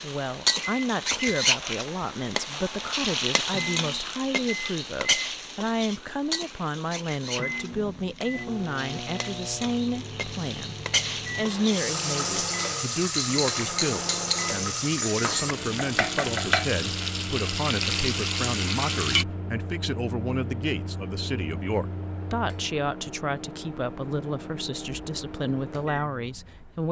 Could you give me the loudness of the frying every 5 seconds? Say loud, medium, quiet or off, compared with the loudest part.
loud, medium, loud, loud, off, off.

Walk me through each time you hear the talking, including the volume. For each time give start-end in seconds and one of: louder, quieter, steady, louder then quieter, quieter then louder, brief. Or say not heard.
0.0-26.8 steady.